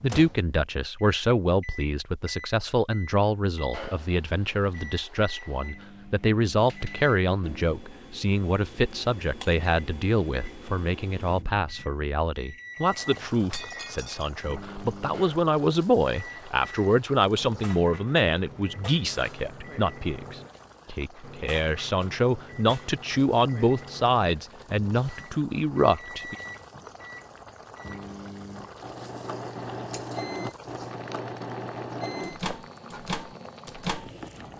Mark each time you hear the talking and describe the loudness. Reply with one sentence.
The talking can be heard from 0.0 to 26.4 s, at a steady volume.